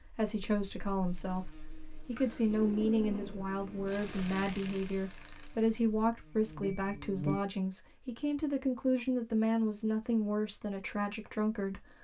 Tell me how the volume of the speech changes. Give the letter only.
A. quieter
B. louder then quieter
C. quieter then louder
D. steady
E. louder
D.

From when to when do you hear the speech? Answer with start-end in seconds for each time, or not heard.
0.0-12.0.